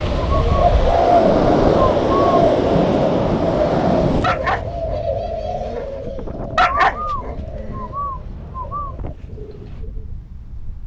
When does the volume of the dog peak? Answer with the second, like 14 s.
7 s.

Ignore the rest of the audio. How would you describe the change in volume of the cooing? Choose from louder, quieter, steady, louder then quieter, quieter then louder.
quieter.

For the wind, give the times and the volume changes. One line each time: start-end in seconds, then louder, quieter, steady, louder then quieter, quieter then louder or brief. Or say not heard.
0.0-10.8 quieter.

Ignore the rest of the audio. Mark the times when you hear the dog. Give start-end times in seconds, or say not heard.
4.2-7.8.